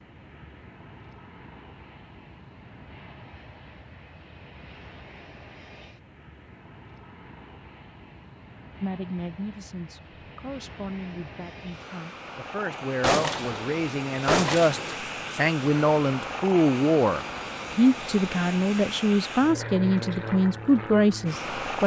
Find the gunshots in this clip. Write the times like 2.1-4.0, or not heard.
13.0-14.9.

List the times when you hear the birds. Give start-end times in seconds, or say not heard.
not heard.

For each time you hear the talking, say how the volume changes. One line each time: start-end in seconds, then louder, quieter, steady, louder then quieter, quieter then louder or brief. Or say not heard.
8.8-21.8 louder.